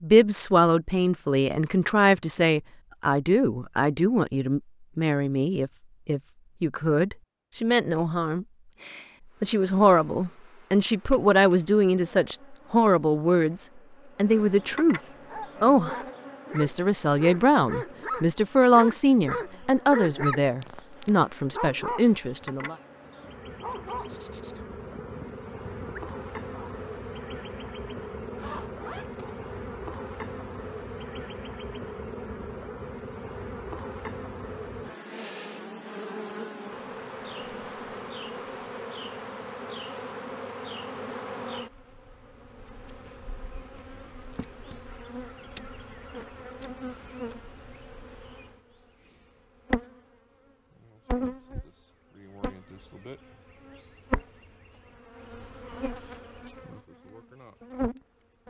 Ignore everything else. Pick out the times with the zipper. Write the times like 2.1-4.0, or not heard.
28.4-29.4.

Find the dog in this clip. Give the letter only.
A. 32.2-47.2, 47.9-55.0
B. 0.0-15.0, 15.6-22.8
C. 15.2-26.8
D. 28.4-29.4
C.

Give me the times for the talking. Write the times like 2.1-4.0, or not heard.
0.0-15.0, 15.6-22.8.